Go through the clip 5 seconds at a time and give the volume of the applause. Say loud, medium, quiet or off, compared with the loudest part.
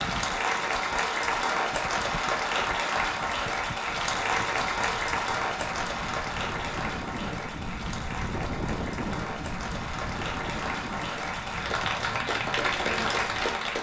loud, medium, loud.